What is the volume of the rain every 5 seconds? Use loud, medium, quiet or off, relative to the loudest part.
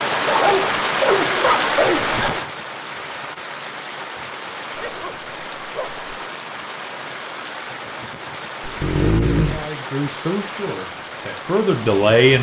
loud, medium, medium.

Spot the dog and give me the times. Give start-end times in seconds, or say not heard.
0.2-2.4, 4.8-6.0, 8.6-9.7.